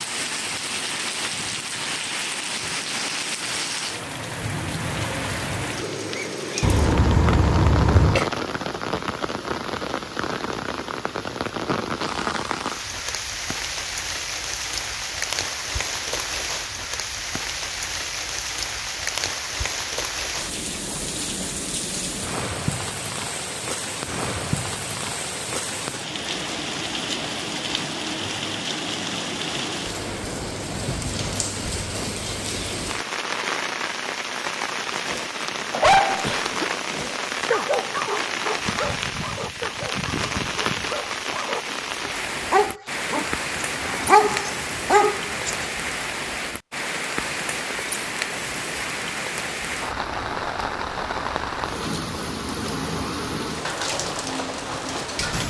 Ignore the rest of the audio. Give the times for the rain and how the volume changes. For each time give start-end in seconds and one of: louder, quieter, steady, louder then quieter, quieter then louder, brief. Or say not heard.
0.0-55.4 steady.